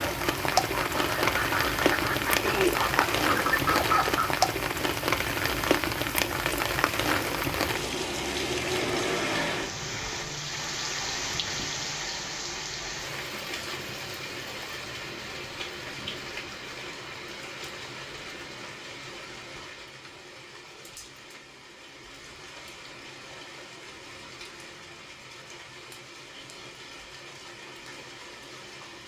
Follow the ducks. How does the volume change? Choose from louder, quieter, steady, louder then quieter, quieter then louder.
louder.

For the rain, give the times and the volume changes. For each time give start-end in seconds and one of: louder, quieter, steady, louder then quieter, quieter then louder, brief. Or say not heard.
0.0-29.0 quieter.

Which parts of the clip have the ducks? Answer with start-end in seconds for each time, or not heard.
0.0-4.5.